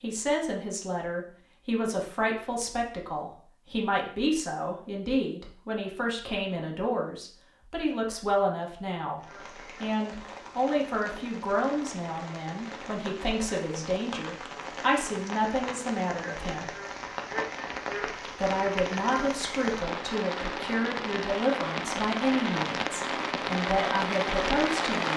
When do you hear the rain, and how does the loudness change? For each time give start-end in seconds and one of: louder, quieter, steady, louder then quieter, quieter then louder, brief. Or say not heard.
9.2-25.1 louder.